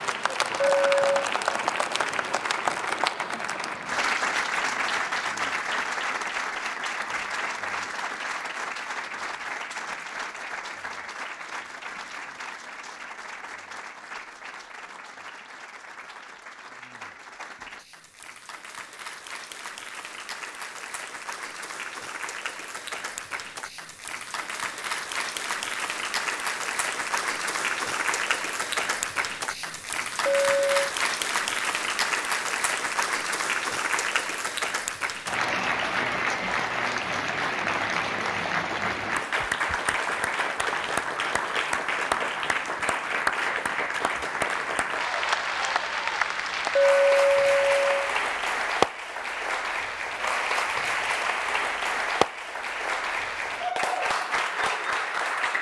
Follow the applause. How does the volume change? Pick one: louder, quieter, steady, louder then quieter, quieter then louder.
quieter then louder.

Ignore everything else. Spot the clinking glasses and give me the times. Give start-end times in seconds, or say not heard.
0.6-1.2, 30.2-30.9, 46.8-48.1.